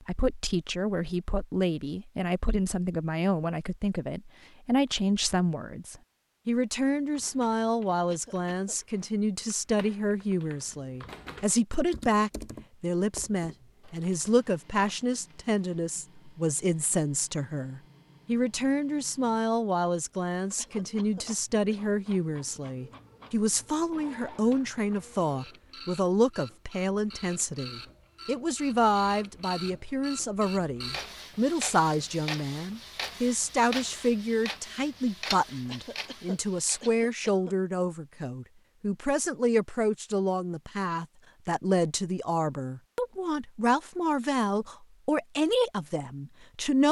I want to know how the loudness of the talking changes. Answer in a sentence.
The loudness of the talking stays about the same.